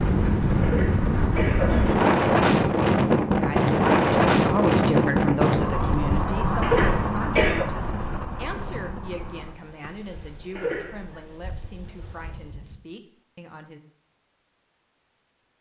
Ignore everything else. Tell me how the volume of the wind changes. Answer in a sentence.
The loudness of the wind goes down.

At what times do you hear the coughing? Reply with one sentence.
The coughing can be heard from 0.6 to 2.0 s, from 6.6 to 7.7 s and from 10.6 to 11.2 s.